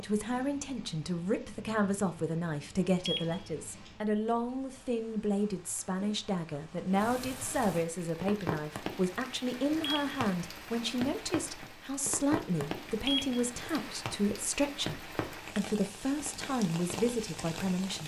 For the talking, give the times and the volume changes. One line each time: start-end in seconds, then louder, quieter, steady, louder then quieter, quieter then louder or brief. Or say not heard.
0.0-18.0 steady.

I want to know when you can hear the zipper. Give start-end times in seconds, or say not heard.
not heard.